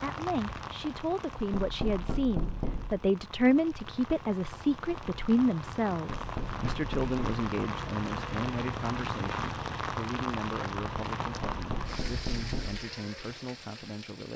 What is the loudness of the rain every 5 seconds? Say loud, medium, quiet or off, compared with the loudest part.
medium, loud, loud.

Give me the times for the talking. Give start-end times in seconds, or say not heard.
0.0-14.3.